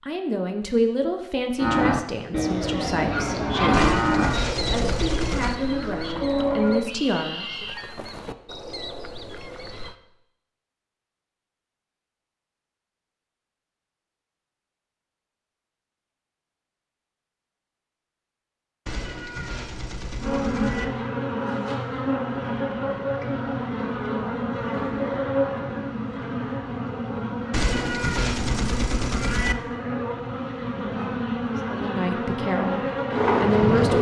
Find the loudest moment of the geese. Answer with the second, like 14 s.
4 s.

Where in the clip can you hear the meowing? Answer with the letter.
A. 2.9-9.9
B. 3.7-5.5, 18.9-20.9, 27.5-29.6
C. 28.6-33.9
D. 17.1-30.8
B.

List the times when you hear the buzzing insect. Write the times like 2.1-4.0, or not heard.
20.2-33.9.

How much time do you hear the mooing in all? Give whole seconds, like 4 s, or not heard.
5 s.